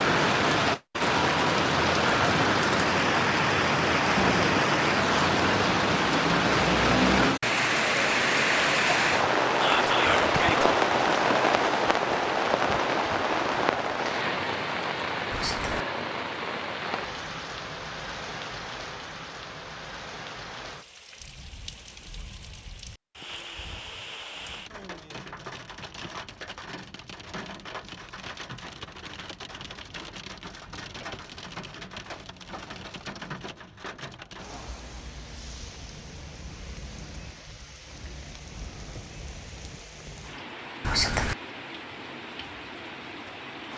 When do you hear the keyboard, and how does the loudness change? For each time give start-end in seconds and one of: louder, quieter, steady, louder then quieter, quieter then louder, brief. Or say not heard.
not heard.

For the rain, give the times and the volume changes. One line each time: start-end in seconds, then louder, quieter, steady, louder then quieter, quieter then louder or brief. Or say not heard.
0.0-43.7 quieter.